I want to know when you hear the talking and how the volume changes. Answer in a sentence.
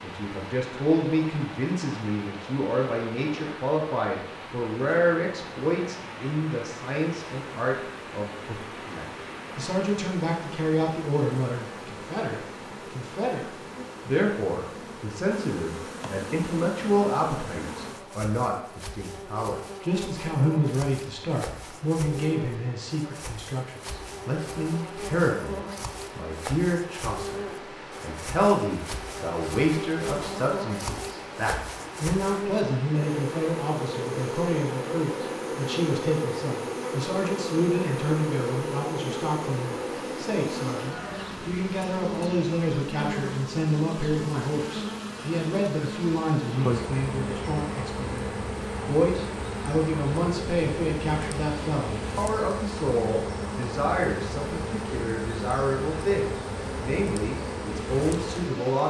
You can hear the talking from 0.0 to 48.2 s, at a steady volume; and from 48.9 to 58.8 s, at a steady volume.